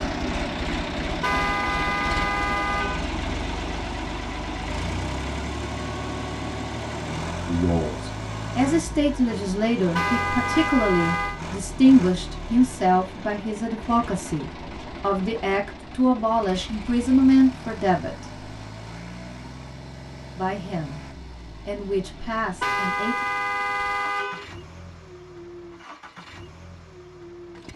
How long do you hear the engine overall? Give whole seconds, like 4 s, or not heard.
28 s.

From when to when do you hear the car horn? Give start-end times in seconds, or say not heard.
1.2-3.1, 9.9-11.4, 22.6-24.4.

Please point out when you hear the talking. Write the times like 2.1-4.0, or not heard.
7.5-18.2, 20.4-23.2.